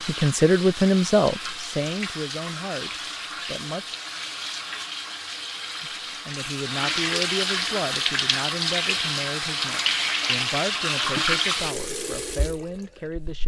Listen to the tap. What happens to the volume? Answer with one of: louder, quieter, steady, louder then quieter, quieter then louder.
louder.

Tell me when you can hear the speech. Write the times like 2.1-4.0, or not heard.
0.1-4.0, 5.8-13.4.